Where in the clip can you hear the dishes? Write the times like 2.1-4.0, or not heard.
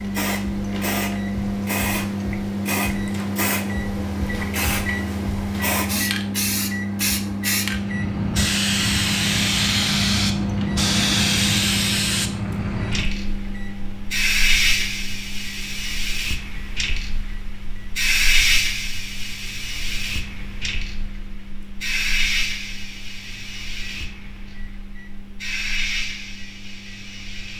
not heard.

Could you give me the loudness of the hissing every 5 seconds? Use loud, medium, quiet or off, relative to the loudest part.
medium, loud, loud, loud, medium, medium.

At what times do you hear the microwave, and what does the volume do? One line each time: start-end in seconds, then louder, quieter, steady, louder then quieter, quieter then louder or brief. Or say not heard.
0.0-27.5 quieter.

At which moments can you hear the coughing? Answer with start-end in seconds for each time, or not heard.
not heard.